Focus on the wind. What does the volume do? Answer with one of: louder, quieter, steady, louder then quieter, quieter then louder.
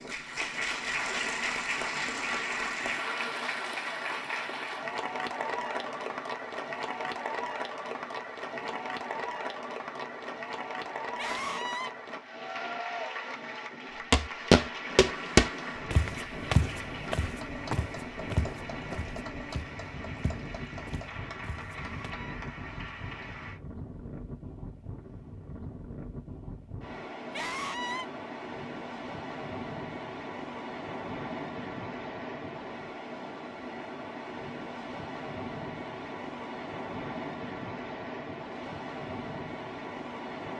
louder.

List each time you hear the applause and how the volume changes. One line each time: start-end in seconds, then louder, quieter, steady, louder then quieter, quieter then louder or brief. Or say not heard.
0.0-23.6 quieter.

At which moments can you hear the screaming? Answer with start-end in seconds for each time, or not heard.
11.2-11.9, 21.7-22.4, 27.3-28.1.